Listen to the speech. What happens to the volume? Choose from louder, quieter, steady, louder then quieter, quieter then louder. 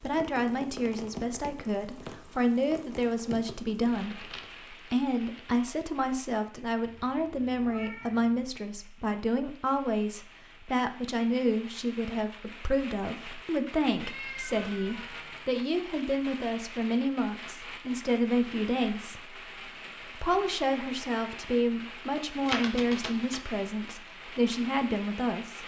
steady.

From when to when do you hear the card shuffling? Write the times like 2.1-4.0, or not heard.
4.0-5.5, 22.4-23.4.